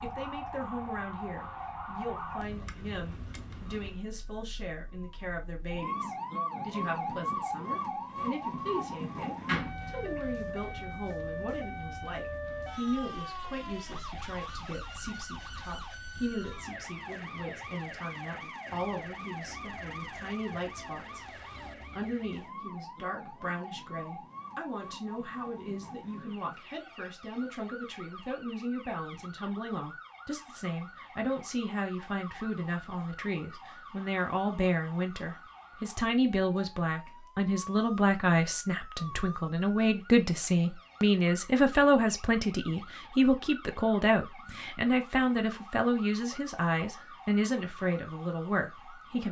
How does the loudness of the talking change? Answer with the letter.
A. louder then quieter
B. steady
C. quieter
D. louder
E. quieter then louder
D.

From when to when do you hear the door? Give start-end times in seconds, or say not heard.
9.4-10.2.